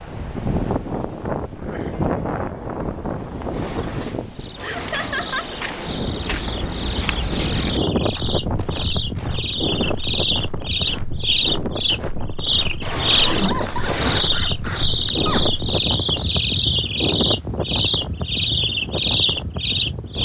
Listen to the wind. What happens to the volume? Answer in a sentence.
The loudness of the wind stays about the same.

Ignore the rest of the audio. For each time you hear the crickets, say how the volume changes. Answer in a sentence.
You can hear the crickets from 0.0 to 20.1 s, getting louder.